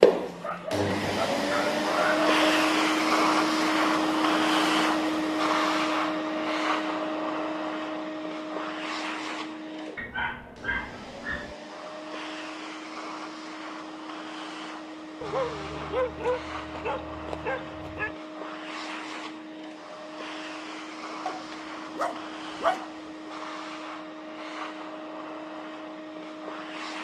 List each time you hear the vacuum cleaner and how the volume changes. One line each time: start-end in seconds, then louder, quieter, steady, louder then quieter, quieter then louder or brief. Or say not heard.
0.0-27.0 quieter.